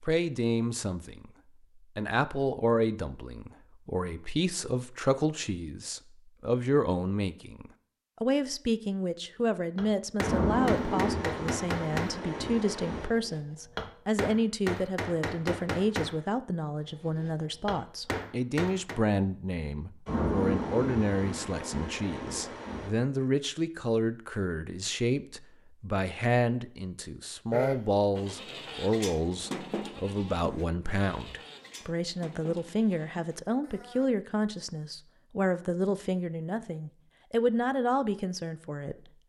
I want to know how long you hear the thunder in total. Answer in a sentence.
You can hear the thunder for 6 seconds altogether.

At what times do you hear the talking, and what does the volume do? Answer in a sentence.
The talking can be heard from 0.0 to 39.2 s, at a steady volume.